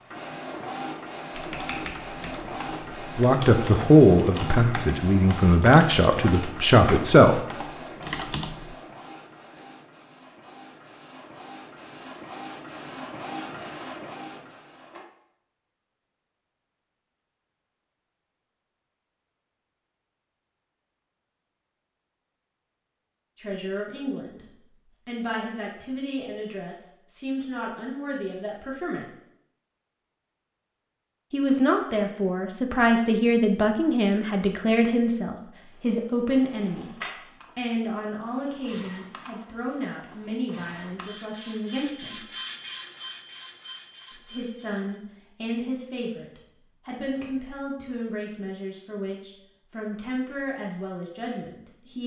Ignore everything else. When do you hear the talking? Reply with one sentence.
The talking can be heard from 3.1 to 7.4 s, from 23.4 to 29.1 s, from 31.3 to 42.2 s and from 44.1 to 52.0 s.